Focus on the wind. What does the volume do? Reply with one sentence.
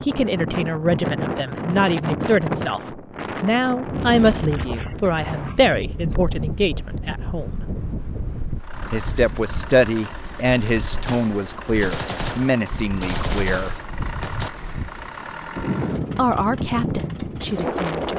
The volume of the wind goes down, then up.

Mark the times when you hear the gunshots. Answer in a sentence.
You can hear the gunshots from 11.1 to 14.5 s.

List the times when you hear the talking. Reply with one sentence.
You can hear the talking from 0.0 to 7.6 s, from 8.9 to 13.8 s and from 16.1 to 18.1 s.